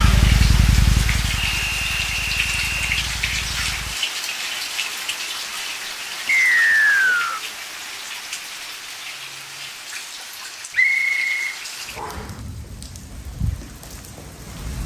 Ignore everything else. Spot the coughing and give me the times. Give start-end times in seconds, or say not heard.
not heard.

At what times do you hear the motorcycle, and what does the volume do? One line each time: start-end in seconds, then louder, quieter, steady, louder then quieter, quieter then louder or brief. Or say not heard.
0.0-4.0 quieter.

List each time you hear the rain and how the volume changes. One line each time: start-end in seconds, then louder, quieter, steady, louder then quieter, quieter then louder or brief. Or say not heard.
0.0-14.8 quieter.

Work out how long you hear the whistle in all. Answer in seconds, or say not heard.
4 s.